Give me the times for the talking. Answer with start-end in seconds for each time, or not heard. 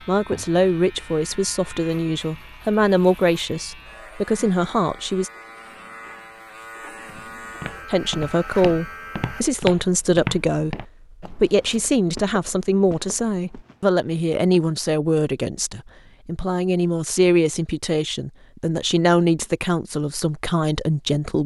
0.1-5.3, 7.9-21.4.